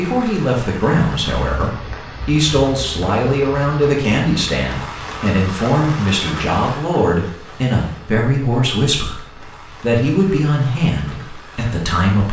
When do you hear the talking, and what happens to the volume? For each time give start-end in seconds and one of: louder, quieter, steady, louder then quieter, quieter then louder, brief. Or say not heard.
0.0-12.2 steady.